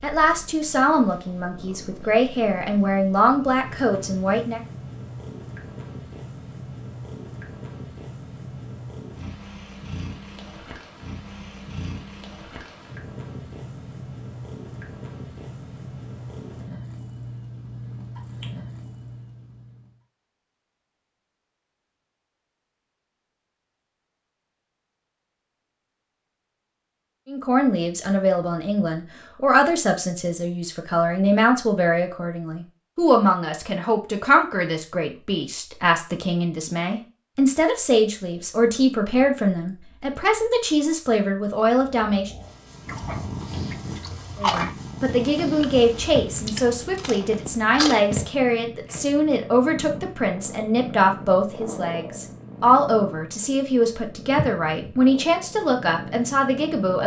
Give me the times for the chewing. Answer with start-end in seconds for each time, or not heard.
42.9-48.1.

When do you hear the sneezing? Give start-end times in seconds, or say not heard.
not heard.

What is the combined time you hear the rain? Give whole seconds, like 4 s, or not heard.
not heard.